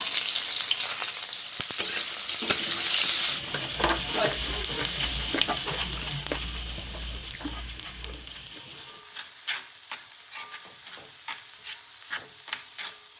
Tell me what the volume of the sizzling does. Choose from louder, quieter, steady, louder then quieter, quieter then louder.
quieter.